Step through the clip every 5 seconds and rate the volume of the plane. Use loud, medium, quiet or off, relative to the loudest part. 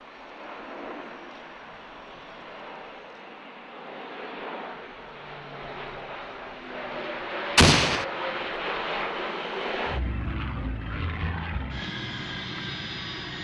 medium, loud, loud.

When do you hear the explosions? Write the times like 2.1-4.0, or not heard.
7.5-8.1.